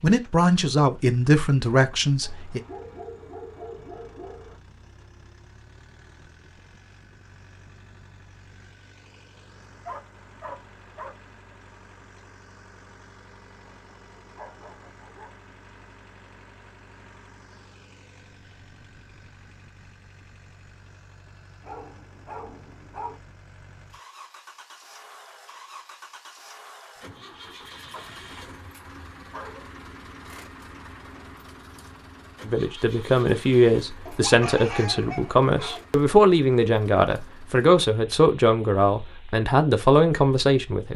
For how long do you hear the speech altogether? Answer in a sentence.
You can hear the speech for 11 seconds altogether.